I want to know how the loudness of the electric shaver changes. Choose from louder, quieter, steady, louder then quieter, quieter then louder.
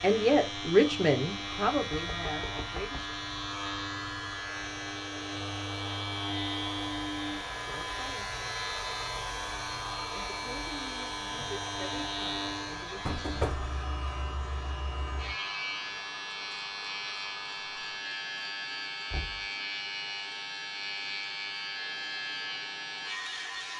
steady.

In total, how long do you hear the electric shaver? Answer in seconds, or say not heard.
24 s.